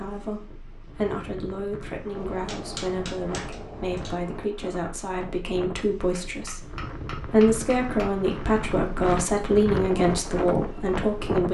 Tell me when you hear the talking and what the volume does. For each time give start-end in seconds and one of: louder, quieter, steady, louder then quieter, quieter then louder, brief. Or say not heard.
0.0-11.4 louder.